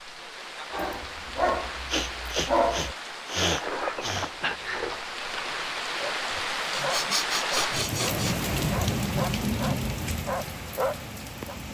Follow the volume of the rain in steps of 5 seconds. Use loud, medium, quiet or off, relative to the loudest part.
medium, loud, medium.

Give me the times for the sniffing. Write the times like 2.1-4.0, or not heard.
1.9-4.3, 6.3-8.3.